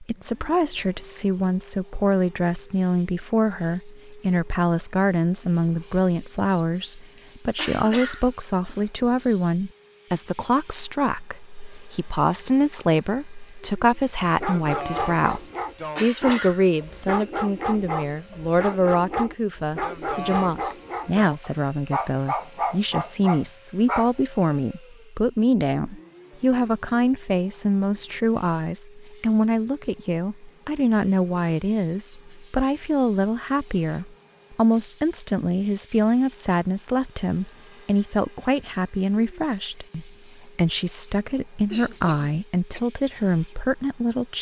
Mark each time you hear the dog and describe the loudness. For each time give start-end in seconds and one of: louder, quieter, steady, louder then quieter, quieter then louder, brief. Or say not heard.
14.2-24.1 steady.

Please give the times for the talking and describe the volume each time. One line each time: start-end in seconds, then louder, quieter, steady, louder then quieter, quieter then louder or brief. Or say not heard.
0.0-44.3 steady.